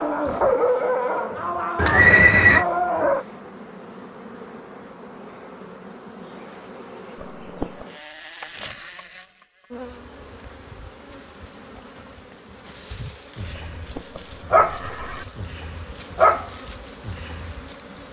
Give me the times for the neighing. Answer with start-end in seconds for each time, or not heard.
1.8-2.6, 7.2-7.8, 13.8-15.2.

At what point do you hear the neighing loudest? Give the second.
2 s.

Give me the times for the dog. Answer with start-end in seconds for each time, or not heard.
0.0-3.2, 13.3-17.6.